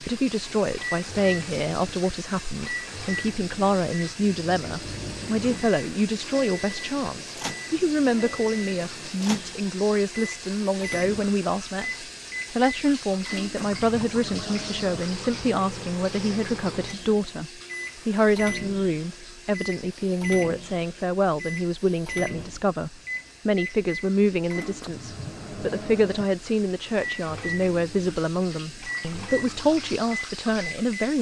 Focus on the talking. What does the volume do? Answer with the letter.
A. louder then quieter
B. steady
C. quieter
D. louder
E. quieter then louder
B.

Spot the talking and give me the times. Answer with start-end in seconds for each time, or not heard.
0.0-31.1.